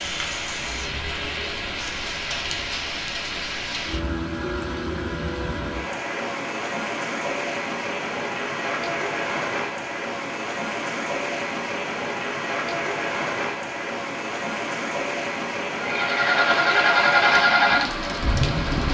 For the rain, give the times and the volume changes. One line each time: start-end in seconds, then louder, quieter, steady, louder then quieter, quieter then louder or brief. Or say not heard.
0.0-18.8 steady.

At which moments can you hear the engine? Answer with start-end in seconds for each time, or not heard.
15.8-18.8.